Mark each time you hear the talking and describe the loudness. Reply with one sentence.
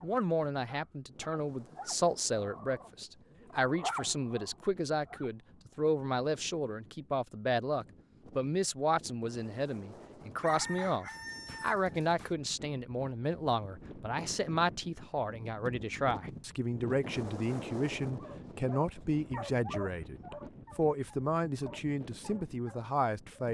You can hear the talking from 0.0 to 23.4 s, at a steady volume.